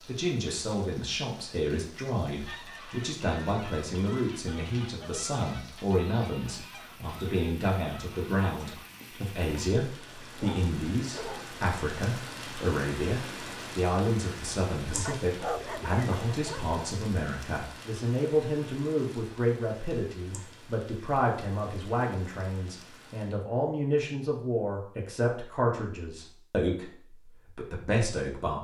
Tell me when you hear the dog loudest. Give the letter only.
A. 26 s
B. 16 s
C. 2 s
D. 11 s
B.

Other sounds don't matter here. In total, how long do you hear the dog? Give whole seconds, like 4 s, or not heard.
3 s.